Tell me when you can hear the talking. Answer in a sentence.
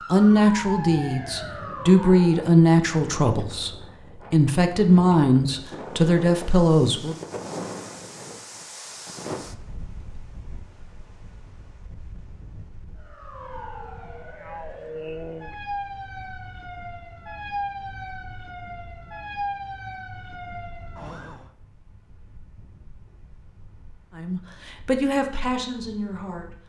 The talking can be heard from 0.1 to 7.2 s and from 24.1 to 26.6 s.